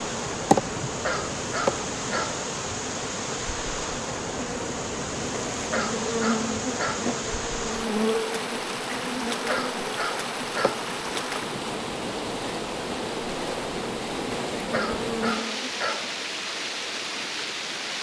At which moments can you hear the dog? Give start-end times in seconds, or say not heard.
0.9-2.5, 5.7-7.1, 9.4-10.9, 14.7-16.1.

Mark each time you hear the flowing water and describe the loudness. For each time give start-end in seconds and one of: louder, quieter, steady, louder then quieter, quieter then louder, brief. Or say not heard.
0.0-17.9 steady.